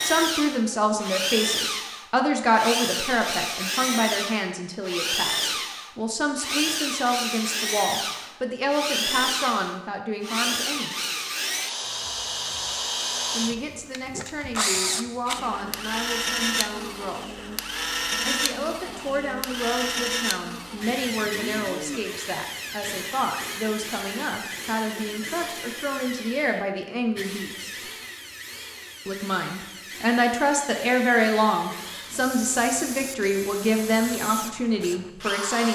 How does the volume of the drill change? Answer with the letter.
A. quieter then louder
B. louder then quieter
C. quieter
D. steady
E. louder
C.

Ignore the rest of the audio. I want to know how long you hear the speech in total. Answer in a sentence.
You can hear the speech for 31 seconds altogether.